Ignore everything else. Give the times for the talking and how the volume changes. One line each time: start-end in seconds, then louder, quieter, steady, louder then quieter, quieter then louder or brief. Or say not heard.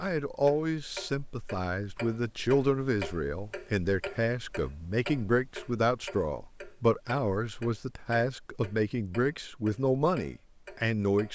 0.0-11.3 steady.